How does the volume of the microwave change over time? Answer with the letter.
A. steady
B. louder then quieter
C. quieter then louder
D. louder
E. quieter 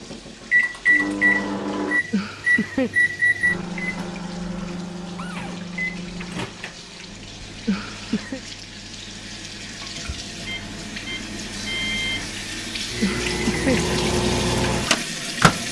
C.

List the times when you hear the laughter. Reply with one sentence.
The laughter can be heard from 2.1 to 2.9 s, from 7.7 to 8.4 s and from 13.0 to 13.9 s.